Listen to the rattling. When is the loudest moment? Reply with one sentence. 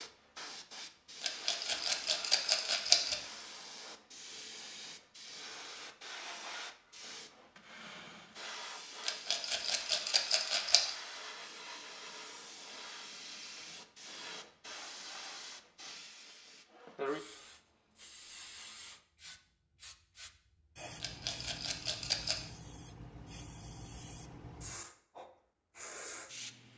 The volume of the rattling peaks at 3 seconds.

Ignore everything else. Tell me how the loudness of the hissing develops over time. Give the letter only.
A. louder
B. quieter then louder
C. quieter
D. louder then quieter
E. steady
E.